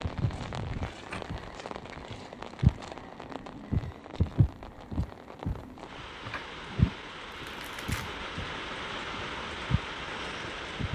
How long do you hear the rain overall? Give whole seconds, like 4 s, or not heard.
11 s.